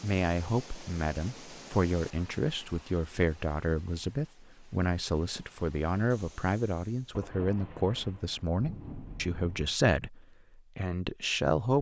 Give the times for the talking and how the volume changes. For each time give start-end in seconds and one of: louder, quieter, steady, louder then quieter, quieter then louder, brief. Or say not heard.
0.0-11.7 steady.